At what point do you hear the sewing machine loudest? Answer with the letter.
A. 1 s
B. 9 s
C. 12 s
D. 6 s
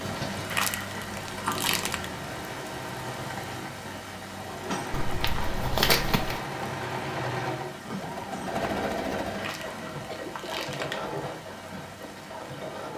B.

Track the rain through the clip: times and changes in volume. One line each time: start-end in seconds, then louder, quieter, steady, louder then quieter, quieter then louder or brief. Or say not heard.
0.0-12.9 quieter.